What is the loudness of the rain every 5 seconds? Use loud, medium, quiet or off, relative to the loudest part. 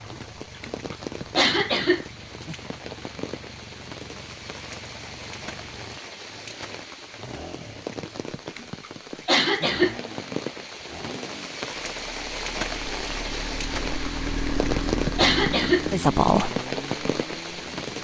medium, medium, loud, loud.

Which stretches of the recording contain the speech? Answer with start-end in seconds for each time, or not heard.
15.9-16.5.